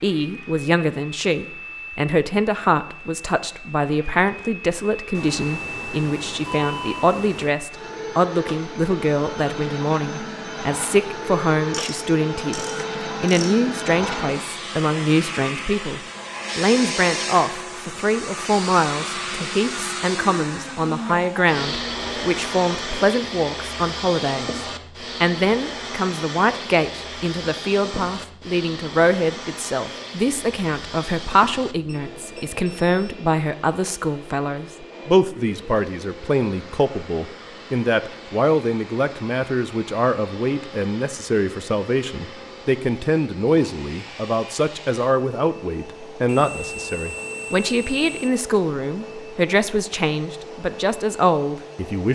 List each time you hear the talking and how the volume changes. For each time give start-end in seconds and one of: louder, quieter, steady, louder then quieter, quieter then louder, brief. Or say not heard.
0.0-24.6 steady
25.2-52.1 steady.